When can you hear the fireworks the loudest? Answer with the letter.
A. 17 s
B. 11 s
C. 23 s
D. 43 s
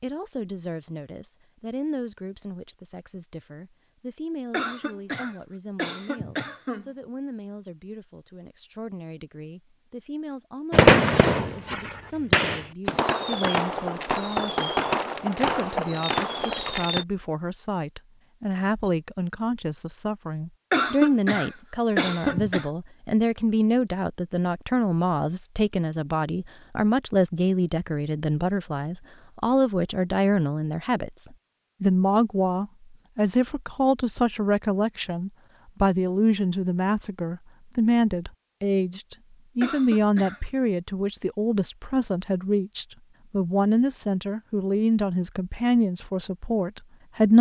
B.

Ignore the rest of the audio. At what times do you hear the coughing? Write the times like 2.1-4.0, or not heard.
4.5-6.9, 20.7-22.7, 39.6-40.5.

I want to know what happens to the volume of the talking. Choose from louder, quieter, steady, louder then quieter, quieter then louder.
louder.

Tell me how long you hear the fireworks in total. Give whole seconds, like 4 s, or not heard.
6 s.